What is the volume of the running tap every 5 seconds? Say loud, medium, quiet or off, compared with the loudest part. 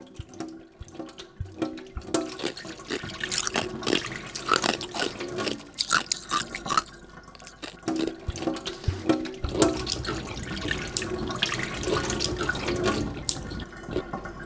medium, loud, loud.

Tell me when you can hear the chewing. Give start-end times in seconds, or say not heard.
2.4-14.1.